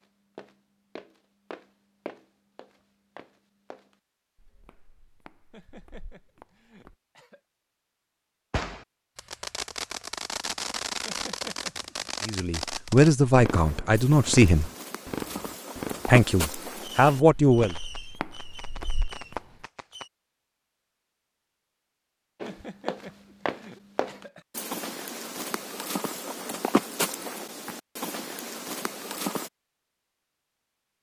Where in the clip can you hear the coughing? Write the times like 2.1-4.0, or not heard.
5.5-7.4, 11.1-12.2, 22.4-24.4.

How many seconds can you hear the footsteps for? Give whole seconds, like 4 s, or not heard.
20 s.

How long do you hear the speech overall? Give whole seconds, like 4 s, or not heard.
4 s.